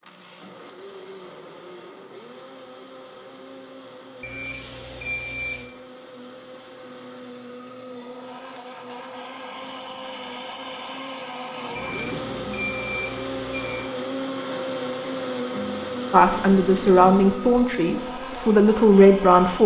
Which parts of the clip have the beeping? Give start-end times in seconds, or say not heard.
4.2-5.7, 11.8-13.9.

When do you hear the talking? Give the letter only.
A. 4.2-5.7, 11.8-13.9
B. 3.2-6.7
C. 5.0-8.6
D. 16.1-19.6
D.